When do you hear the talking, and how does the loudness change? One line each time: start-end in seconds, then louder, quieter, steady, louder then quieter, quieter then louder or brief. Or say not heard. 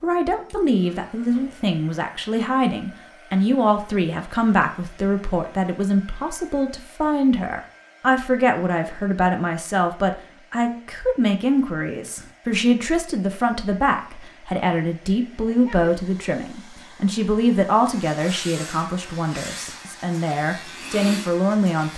0.0-21.9 steady.